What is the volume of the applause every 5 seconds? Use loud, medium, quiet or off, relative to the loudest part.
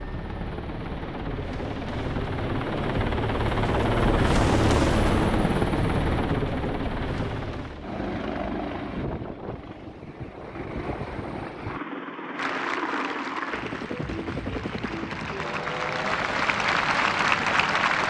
off, off, medium, loud.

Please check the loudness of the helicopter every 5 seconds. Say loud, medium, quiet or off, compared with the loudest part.
loud, loud, medium, medium.